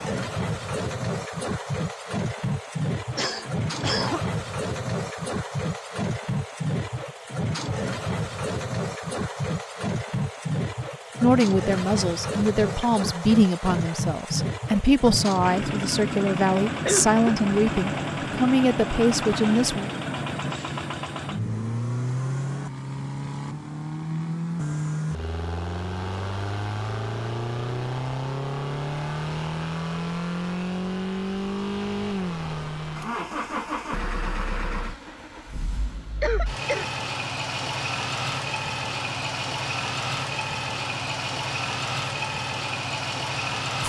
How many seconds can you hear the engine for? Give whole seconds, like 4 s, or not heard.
44 s.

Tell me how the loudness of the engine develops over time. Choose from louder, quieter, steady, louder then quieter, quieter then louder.
steady.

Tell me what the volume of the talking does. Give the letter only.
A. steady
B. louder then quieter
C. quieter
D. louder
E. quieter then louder
A.